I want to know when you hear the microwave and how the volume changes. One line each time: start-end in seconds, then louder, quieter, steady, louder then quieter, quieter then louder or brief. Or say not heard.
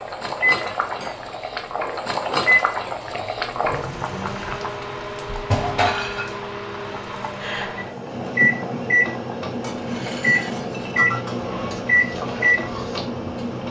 0.0-13.6 quieter then louder.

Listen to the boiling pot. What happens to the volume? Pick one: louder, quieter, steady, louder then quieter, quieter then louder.
quieter.